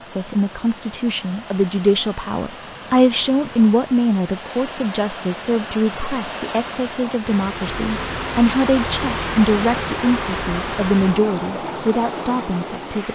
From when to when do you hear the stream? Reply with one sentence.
You can hear the stream from 0.0 to 13.1 s.